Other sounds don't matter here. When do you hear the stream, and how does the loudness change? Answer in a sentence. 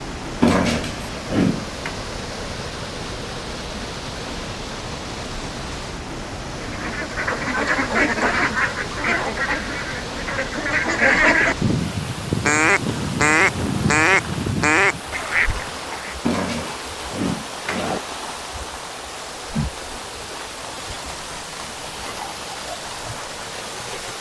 You can hear the stream from 0.0 to 24.1 s, at a steady volume.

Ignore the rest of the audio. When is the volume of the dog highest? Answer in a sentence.
The volume of the dog peaks at 1 second.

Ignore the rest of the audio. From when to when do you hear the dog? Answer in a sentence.
The dog can be heard from 0.4 to 1.9 s and from 16.2 to 18.0 s.